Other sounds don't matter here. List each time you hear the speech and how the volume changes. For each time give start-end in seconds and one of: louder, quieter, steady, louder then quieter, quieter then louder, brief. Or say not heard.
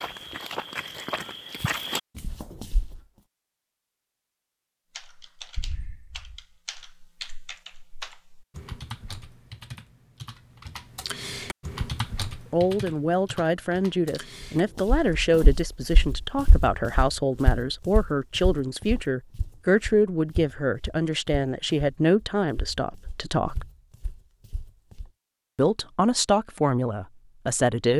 12.5-23.6 steady
25.6-27.9 brief.